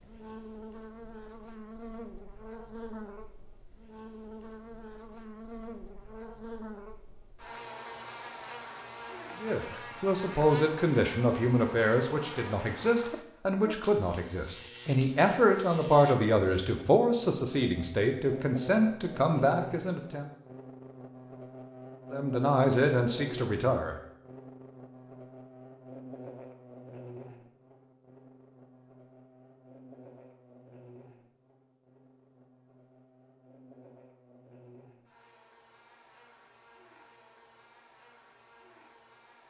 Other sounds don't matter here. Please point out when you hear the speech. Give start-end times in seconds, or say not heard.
9.4-20.3, 22.1-23.9.